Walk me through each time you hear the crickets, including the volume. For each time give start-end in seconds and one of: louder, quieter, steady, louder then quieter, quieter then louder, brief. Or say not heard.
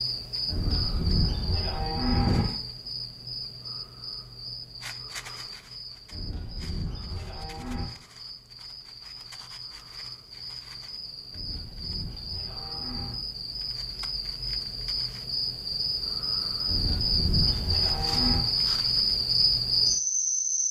0.0-20.6 quieter then louder.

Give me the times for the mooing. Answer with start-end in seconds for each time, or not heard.
0.5-2.5, 6.1-7.8, 11.3-13.2, 16.6-18.4.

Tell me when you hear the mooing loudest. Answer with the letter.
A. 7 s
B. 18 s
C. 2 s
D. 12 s
C.